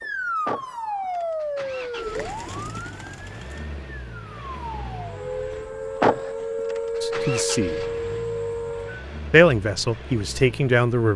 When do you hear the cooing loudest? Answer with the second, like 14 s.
2 s.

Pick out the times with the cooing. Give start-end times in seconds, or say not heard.
1.9-3.6.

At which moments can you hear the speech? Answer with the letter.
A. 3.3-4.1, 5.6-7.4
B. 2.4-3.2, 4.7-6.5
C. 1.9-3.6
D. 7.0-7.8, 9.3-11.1
D.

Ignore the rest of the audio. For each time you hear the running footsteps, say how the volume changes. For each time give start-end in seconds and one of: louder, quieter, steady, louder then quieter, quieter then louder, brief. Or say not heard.
not heard.